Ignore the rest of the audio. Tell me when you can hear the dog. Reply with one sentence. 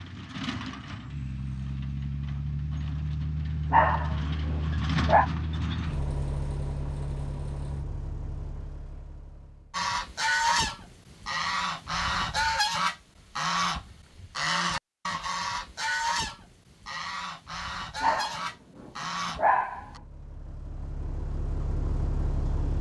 The dog can be heard from 3.7 to 5.3 s and from 18.0 to 19.9 s.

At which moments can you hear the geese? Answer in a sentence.
The geese can be heard from 9.7 to 20.0 s.